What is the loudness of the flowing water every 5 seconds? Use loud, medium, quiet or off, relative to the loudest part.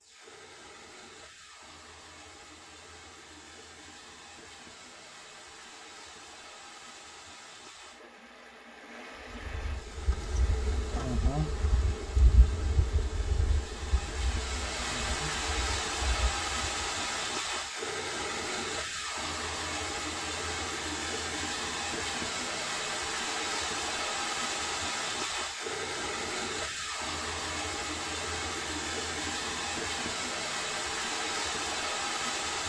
quiet, quiet, medium, loud, loud, loud, loud.